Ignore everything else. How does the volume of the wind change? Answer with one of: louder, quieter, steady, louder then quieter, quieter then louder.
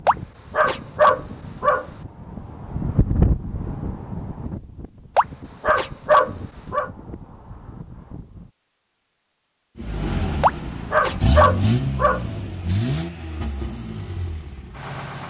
louder then quieter.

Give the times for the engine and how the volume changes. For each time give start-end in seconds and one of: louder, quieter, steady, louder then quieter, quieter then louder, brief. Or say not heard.
9.8-15.2 louder then quieter.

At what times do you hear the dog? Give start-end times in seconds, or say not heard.
0.1-1.9, 5.2-6.9, 10.4-12.2.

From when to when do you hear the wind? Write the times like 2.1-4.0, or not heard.
0.0-8.5.